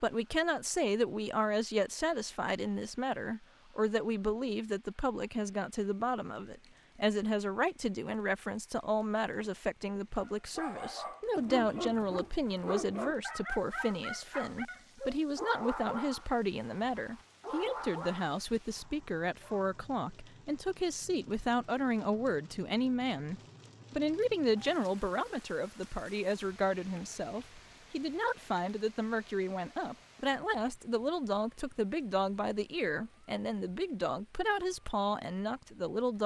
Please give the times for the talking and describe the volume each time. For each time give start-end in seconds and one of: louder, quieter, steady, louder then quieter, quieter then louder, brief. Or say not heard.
0.0-36.2 steady.